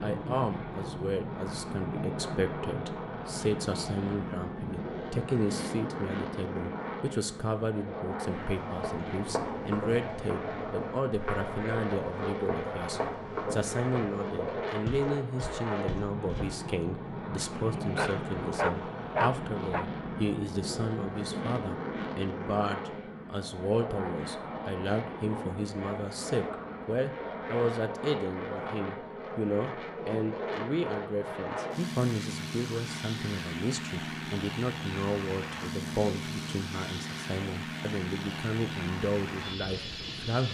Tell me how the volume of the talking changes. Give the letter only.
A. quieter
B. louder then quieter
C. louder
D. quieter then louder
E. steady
E.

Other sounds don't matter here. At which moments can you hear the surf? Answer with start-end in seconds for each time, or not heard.
not heard.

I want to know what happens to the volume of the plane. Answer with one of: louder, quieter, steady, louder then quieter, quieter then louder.
steady.